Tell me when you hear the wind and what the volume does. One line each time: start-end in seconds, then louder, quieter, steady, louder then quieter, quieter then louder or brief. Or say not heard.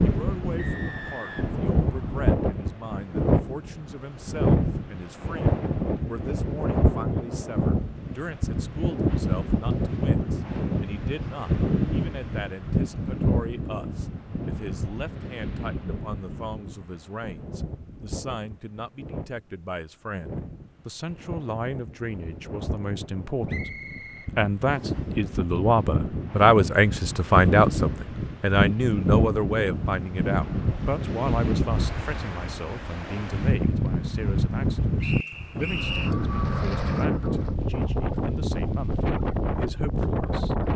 0.0-40.7 quieter then louder.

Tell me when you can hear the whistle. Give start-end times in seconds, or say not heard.
0.6-2.4, 23.4-25.1, 35.0-36.1.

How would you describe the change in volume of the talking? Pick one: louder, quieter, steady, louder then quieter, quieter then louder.
louder then quieter.